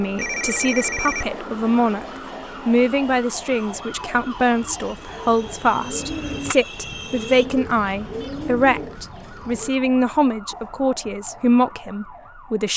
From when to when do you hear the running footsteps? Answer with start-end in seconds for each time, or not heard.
not heard.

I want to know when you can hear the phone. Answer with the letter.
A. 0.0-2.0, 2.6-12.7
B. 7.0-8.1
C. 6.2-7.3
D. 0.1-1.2
D.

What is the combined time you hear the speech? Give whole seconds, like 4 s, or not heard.
12 s.